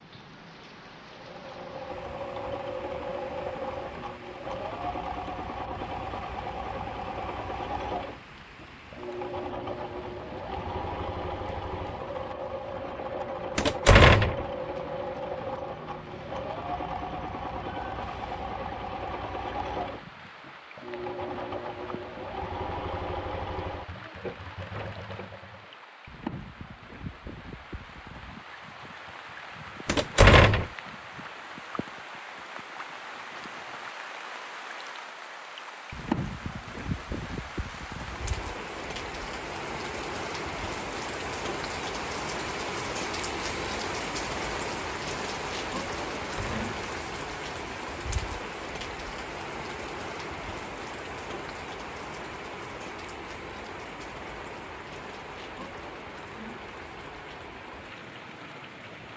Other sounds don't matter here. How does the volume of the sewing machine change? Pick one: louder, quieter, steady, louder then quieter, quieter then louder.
steady.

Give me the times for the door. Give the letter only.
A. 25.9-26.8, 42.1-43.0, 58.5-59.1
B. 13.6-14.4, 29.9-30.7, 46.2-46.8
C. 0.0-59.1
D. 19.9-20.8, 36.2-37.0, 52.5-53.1
B.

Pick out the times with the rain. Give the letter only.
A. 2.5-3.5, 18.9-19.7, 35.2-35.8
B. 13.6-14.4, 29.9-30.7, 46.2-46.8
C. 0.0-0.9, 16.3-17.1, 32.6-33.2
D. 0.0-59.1
D.